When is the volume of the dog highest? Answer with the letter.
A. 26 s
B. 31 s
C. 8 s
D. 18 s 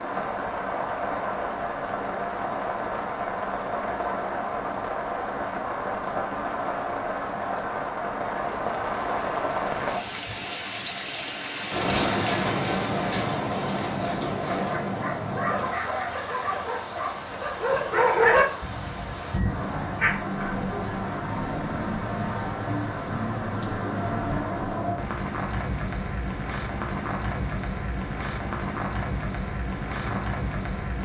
D.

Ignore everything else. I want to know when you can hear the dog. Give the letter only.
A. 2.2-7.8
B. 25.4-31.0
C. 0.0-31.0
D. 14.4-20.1
D.